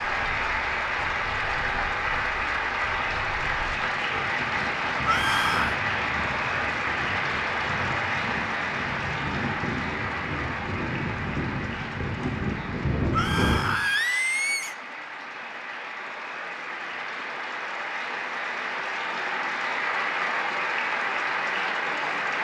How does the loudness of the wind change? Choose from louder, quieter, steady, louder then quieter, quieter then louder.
louder.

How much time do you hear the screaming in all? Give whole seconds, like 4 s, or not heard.
2 s.